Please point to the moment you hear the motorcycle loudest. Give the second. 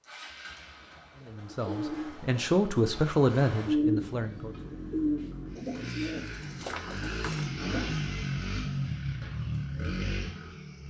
8 s.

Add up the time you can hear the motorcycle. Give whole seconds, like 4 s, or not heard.
11 s.